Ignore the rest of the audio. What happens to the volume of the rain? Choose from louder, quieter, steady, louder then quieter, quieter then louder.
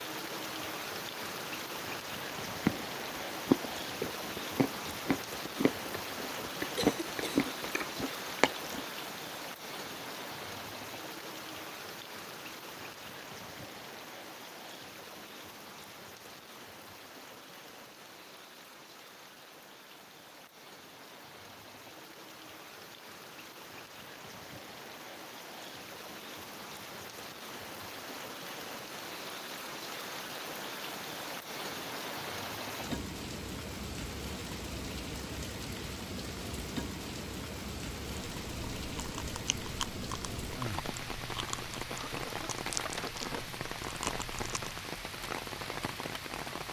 quieter then louder.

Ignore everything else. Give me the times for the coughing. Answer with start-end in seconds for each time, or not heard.
6.8-7.8, 41.9-43.5.